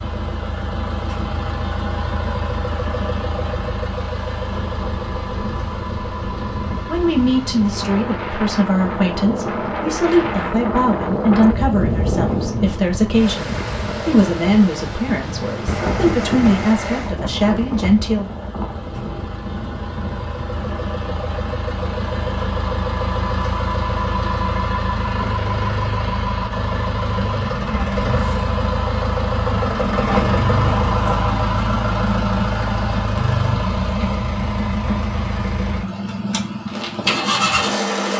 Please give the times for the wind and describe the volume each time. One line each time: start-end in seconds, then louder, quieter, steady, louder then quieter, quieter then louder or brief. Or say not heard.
0.0-22.9 louder then quieter.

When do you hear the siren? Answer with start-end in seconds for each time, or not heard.
not heard.